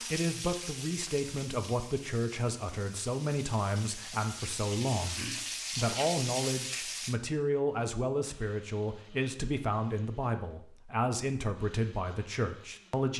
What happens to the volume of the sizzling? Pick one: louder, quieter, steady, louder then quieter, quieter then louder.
quieter then louder.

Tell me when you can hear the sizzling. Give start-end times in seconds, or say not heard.
0.0-7.2.